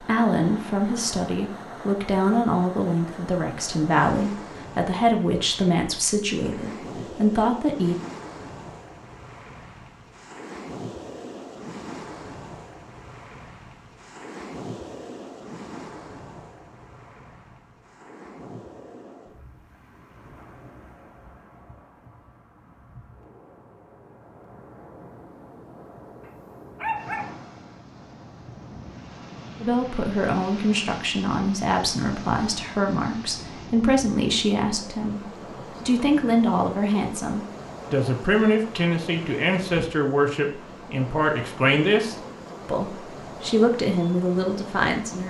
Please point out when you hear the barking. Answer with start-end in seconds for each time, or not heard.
26.2-27.4.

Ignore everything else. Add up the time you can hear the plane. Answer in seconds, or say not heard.
not heard.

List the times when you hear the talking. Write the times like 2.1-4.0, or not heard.
0.0-8.1, 29.6-45.2.